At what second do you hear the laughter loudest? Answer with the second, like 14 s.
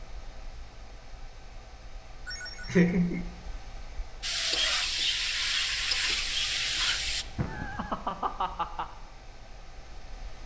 3 s.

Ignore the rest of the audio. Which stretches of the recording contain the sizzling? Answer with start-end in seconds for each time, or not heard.
4.2-7.2.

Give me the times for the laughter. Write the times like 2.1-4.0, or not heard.
2.2-3.2, 7.3-8.8.